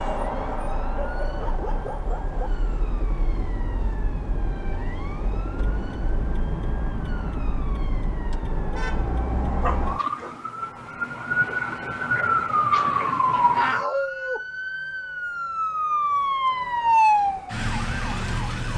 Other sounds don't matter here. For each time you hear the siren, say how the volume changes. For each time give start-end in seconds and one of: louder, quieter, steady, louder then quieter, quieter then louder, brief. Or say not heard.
0.0-18.7 louder.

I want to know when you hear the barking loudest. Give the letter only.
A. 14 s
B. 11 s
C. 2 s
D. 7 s
A.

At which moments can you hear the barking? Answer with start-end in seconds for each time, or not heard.
0.9-2.5, 9.6-10.3, 12.8-14.4.